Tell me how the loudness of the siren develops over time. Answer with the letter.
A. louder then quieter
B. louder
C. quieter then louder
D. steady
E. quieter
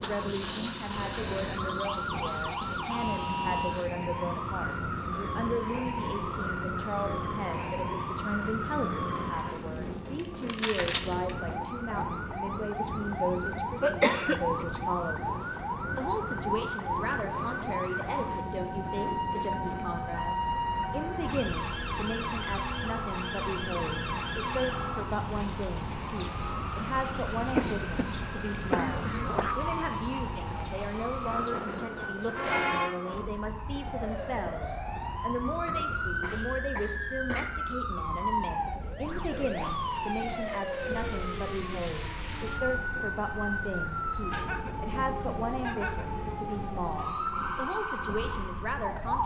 D.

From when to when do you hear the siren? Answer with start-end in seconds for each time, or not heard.
0.0-49.2.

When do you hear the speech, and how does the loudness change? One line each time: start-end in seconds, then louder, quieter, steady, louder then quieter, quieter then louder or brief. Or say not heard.
0.0-49.2 steady.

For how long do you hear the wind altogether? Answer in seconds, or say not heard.
49 s.